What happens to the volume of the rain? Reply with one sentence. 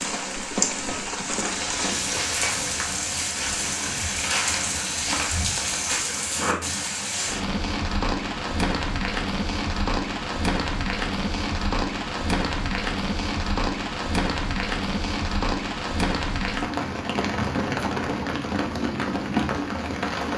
The volume of the rain stays about the same.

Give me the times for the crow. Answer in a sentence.
You can't hear the crow here.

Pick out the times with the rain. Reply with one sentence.
The rain can be heard from 0.0 to 20.3 s.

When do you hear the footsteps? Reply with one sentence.
The footsteps can be heard from 1.4 to 6.8 s.